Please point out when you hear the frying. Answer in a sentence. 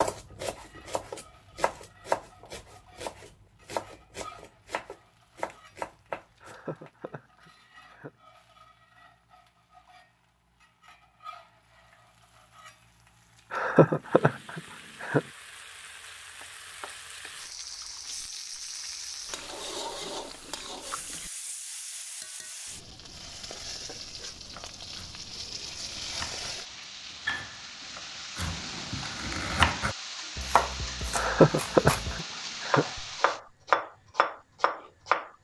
You can hear the frying from 0.1 to 33.4 s.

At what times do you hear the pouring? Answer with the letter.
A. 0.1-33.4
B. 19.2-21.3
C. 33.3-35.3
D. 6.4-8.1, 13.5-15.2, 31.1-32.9
B.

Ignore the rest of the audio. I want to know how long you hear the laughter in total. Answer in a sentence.
You can hear the laughter for 5 seconds altogether.